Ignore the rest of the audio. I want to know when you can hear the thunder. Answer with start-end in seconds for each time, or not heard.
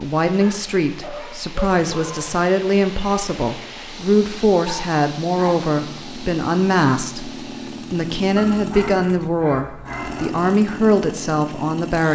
not heard.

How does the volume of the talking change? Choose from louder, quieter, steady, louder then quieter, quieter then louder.
steady.